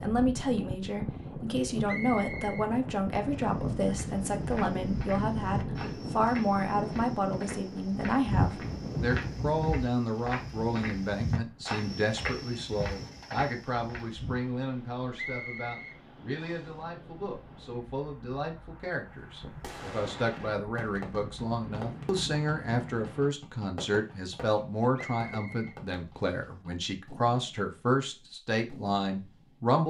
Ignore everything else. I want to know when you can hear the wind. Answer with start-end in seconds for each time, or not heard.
0.0-23.4.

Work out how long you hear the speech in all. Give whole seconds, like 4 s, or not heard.
30 s.